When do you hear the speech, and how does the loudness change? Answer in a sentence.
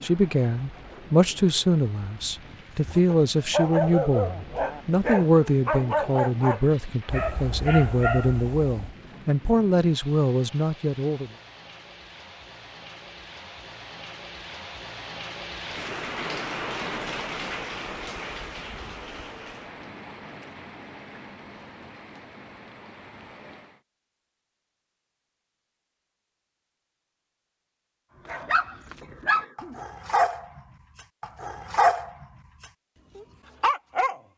You can hear the speech from 0.0 to 11.3 s, at a steady volume.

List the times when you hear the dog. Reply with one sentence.
The dog can be heard from 2.9 to 8.9 s, from 28.2 to 30.6 s and from 31.2 to 34.2 s.